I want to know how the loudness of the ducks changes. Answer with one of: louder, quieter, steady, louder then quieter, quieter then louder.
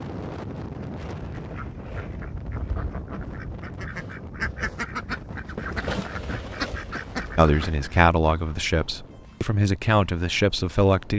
louder.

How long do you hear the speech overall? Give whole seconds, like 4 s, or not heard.
4 s.